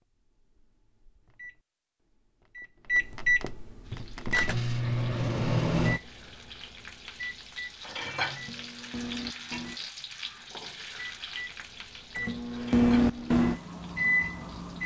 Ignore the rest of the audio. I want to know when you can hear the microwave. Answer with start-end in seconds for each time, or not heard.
0.0-6.1, 7.2-9.9, 10.9-14.8.